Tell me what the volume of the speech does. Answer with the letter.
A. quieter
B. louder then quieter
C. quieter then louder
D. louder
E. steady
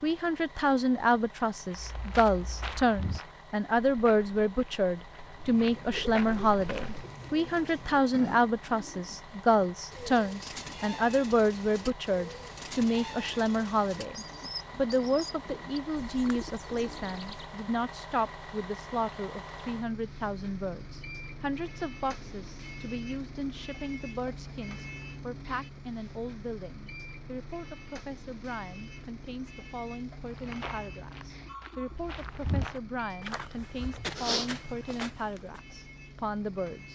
A.